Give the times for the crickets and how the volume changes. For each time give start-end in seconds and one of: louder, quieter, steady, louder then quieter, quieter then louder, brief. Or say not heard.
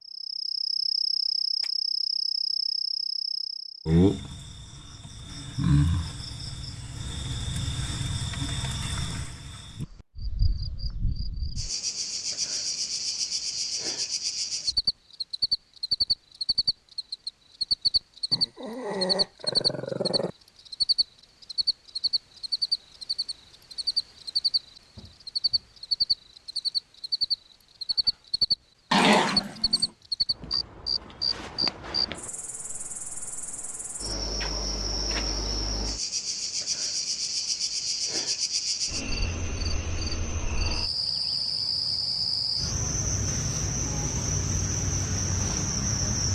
0.1-46.3 steady.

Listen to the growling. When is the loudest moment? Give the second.
29 s.